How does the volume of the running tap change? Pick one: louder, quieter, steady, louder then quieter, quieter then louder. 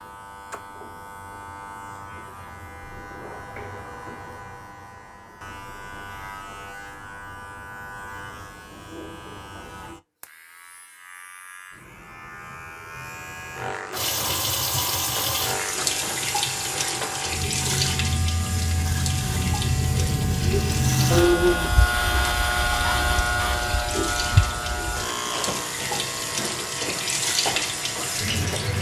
quieter then louder.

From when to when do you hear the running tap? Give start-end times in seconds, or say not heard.
13.9-28.7.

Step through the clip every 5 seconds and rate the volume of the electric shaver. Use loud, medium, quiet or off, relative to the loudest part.
quiet, quiet, quiet, medium, loud, medium.